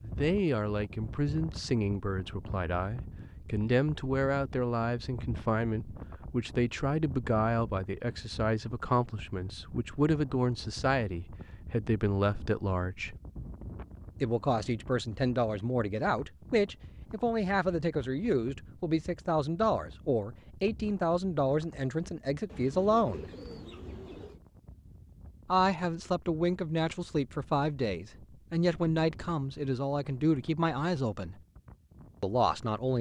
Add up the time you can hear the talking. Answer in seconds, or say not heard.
29 s.